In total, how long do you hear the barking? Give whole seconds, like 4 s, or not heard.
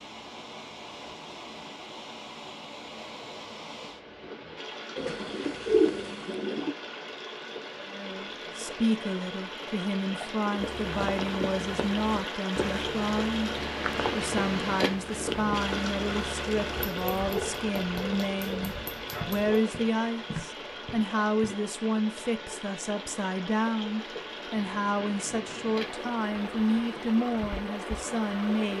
3 s.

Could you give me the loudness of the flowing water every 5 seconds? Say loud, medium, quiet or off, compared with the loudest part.
medium, medium, loud, loud, medium, loud.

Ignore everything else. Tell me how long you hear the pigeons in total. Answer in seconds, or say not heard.
2 s.